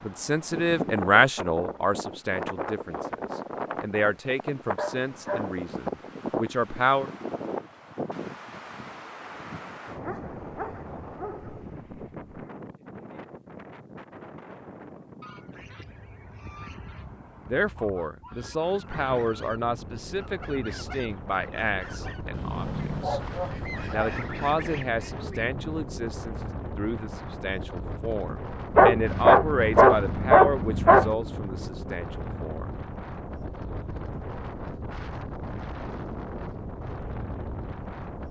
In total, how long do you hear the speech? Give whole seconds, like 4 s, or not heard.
22 s.